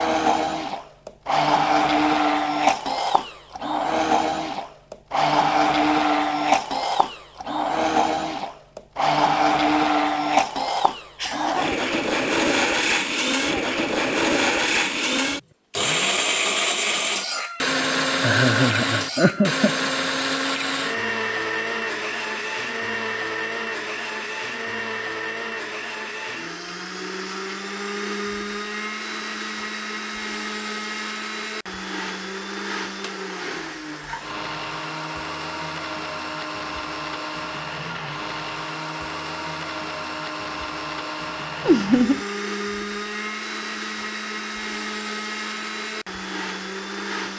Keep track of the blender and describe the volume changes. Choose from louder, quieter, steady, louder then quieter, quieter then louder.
quieter.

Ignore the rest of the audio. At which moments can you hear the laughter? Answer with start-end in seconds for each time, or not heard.
11.2-11.8, 18.2-19.8, 41.6-42.2.